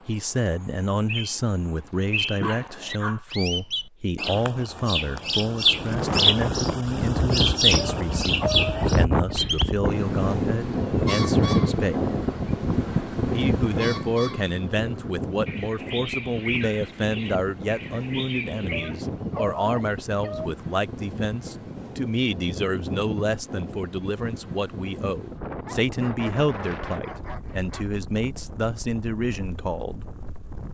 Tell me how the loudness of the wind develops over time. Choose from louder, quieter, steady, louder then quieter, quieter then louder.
quieter.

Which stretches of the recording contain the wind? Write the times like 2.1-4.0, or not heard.
5.7-30.6.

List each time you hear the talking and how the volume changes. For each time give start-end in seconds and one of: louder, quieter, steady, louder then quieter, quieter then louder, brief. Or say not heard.
0.1-12.2 steady
13.3-30.1 steady.